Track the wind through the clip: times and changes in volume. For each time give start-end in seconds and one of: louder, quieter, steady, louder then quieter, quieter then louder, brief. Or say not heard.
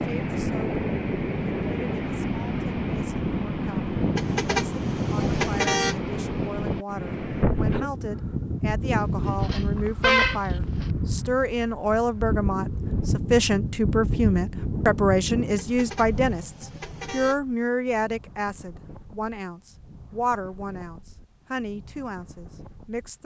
0.0-23.2 quieter.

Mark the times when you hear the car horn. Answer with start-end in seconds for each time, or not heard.
4.2-6.0, 9.0-10.8, 15.6-17.4.